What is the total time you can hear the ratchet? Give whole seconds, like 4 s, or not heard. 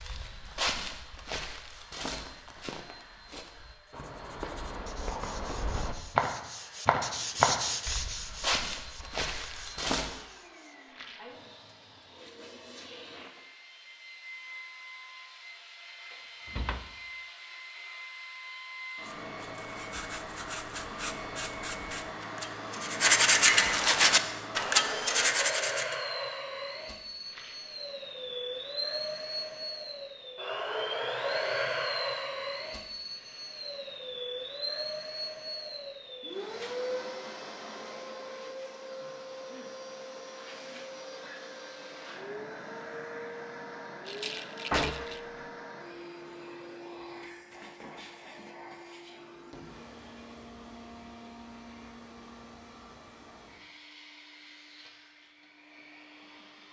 not heard.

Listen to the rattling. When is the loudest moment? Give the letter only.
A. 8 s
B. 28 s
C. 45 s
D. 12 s
C.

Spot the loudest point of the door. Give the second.
45 s.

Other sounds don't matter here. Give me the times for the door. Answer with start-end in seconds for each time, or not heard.
16.4-16.9, 44.7-45.2.